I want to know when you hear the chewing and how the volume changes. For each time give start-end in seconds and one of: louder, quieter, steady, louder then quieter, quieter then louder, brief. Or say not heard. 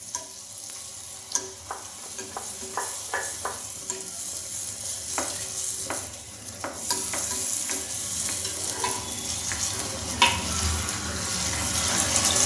not heard.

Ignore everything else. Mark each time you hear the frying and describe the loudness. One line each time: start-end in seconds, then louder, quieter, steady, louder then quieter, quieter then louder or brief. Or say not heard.
0.0-12.4 louder.